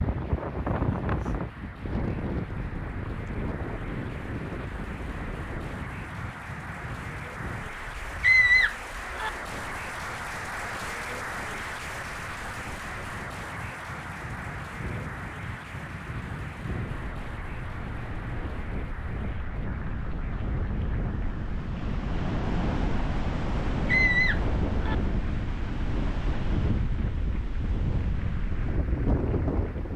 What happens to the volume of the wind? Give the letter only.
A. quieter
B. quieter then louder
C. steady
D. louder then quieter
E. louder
B.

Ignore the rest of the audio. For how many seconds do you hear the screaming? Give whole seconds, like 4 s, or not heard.
2 s.